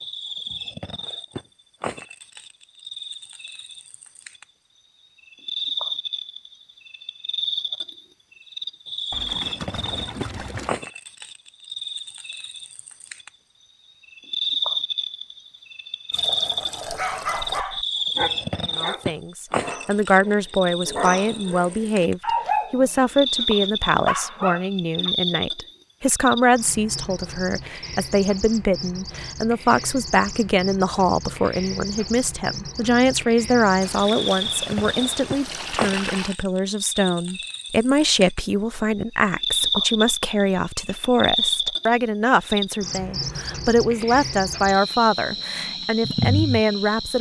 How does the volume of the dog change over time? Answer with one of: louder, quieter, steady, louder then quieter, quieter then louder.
quieter then louder.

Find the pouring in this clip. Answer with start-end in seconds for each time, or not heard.
9.1-10.8, 16.1-17.6, 33.8-36.4.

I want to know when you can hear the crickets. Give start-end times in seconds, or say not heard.
0.0-47.1.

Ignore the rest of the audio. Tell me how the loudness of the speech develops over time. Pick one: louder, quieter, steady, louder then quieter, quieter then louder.
steady.